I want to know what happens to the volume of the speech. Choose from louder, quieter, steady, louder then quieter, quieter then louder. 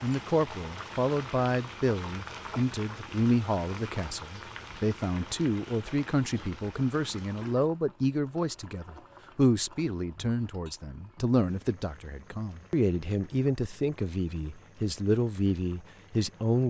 steady.